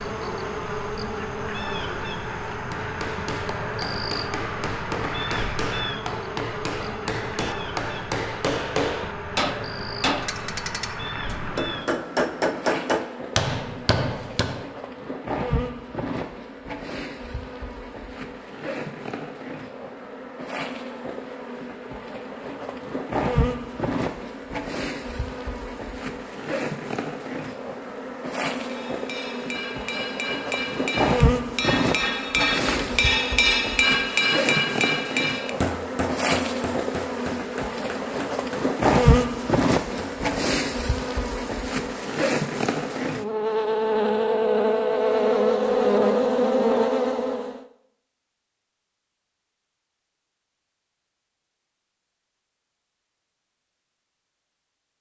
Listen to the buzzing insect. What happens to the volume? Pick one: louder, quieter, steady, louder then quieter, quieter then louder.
louder.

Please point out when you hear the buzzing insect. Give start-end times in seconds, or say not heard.
0.0-47.6.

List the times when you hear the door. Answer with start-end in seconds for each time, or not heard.
32.5-33.1.